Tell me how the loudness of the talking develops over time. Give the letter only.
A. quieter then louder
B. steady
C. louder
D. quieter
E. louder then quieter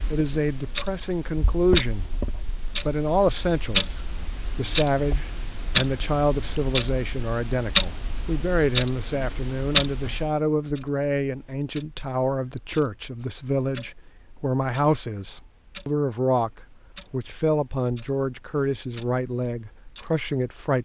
B.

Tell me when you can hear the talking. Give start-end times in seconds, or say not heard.
0.1-16.5, 17.1-20.8.